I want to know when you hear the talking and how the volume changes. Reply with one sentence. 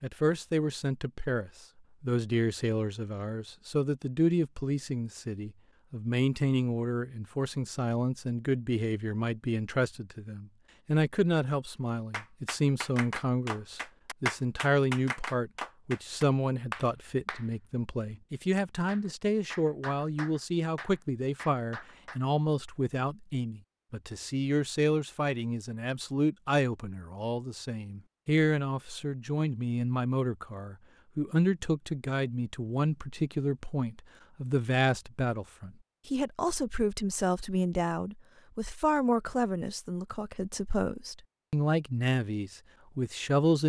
The talking can be heard from 0.0 to 43.6 s, at a steady volume.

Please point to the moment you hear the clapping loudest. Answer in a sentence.
The loudest moment of the clapping is at 14 seconds.